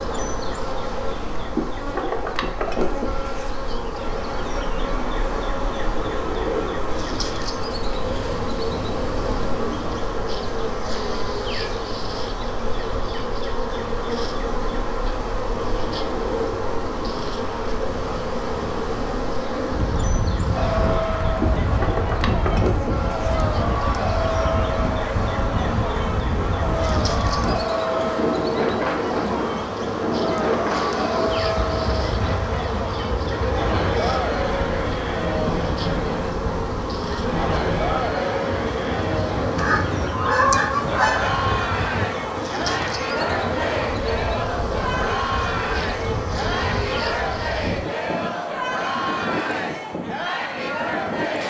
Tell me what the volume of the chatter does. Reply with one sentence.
The volume of the chatter stays about the same.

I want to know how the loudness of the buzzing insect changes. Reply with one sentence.
The loudness of the buzzing insect stays about the same.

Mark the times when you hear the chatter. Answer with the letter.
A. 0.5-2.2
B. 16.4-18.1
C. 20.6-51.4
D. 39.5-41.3
C.